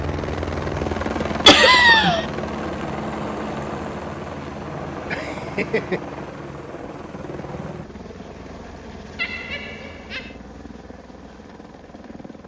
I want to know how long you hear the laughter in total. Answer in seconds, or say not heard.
3 s.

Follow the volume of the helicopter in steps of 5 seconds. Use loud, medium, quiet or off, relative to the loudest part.
loud, medium, quiet.